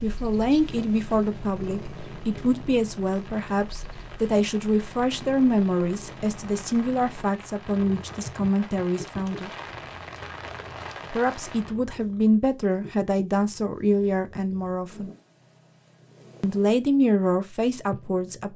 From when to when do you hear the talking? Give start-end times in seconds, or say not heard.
0.0-9.5, 11.1-15.1, 16.4-18.5.